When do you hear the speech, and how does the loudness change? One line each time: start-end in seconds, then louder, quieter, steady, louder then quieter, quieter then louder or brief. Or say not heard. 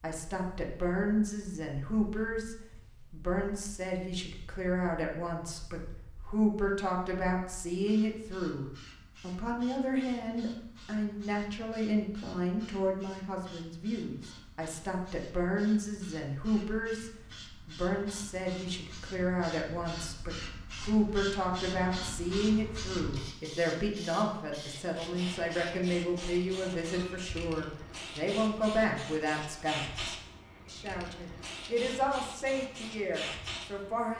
0.0-34.1 steady.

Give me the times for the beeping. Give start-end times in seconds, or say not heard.
not heard.